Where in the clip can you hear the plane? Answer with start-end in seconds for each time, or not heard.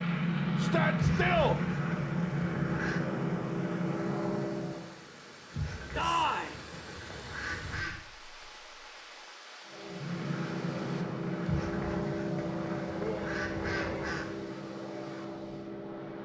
0.0-5.0, 9.7-16.2.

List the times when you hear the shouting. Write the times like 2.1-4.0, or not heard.
0.6-1.6, 6.0-6.5, 12.9-14.2.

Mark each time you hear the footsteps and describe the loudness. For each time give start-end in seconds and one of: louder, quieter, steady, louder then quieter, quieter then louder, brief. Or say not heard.
not heard.